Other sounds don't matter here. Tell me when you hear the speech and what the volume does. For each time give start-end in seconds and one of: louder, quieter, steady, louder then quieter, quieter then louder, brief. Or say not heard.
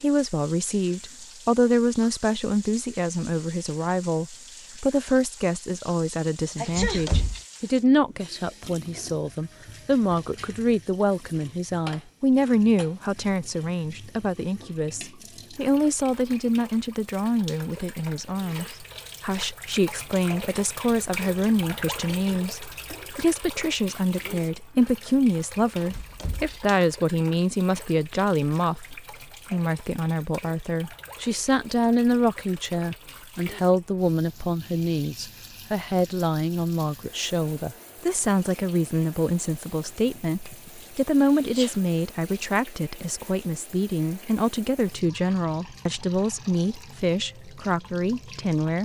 0.0-48.8 steady.